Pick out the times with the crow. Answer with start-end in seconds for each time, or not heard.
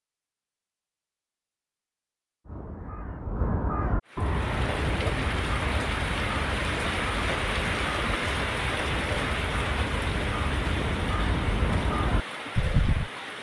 2.5-13.1.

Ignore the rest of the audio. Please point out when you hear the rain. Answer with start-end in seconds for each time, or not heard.
4.0-13.3.